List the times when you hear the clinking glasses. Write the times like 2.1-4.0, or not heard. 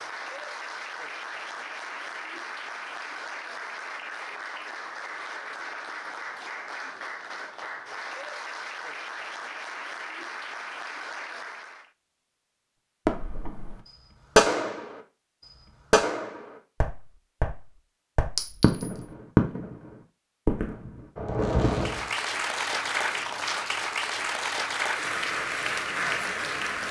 18.4-19.1.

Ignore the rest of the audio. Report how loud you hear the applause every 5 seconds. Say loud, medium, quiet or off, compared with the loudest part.
medium, medium, medium, off, loud, loud.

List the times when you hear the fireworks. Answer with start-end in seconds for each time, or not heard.
13.1-19.8, 20.4-22.1.